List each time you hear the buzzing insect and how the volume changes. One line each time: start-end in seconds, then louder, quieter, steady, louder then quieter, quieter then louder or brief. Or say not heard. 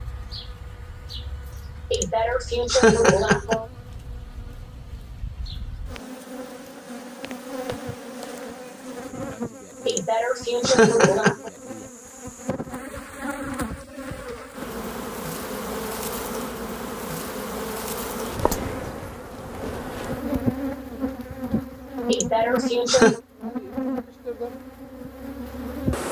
0.0-26.0 louder.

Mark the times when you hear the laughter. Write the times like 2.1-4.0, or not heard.
1.9-3.6, 9.8-11.5, 22.1-23.2.